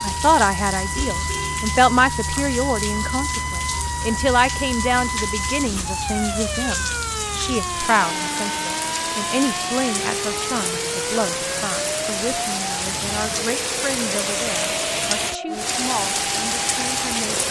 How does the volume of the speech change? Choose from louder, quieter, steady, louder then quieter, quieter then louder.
quieter.